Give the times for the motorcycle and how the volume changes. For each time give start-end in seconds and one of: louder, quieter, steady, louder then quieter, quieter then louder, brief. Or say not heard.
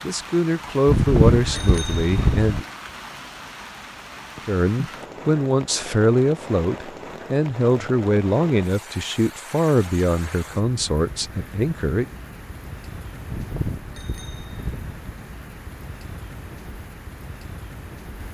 not heard.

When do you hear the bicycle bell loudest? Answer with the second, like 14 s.
1 s.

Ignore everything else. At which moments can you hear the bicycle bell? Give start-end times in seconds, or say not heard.
0.8-2.6, 13.2-15.0.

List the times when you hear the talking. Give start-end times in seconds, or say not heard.
0.0-2.6, 4.5-12.1.